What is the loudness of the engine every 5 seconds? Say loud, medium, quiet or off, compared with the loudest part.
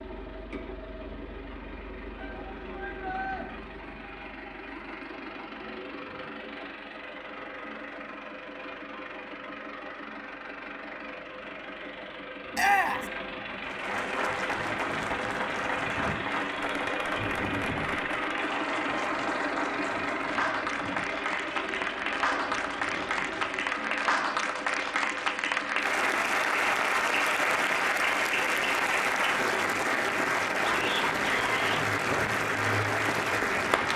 medium, medium, medium, loud, loud, medium, medium.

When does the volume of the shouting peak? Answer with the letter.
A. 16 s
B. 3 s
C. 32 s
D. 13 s
D.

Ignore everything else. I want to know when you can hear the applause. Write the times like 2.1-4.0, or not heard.
13.6-33.9.